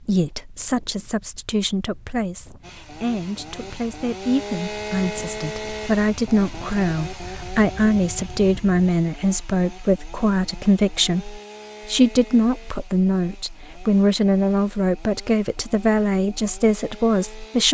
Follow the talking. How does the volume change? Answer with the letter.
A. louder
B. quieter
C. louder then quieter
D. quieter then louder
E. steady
A.